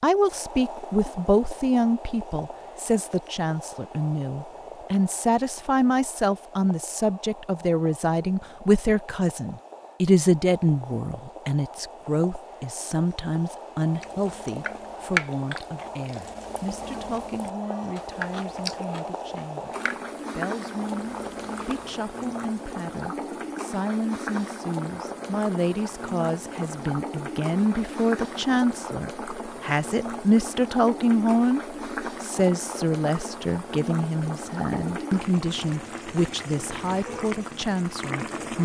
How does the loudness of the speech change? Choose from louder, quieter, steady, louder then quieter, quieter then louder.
quieter then louder.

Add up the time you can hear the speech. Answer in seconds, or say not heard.
38 s.